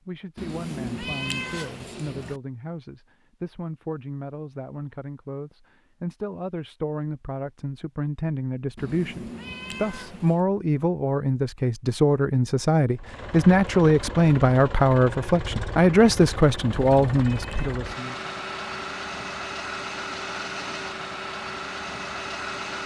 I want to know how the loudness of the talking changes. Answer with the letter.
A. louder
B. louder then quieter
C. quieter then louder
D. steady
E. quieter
A.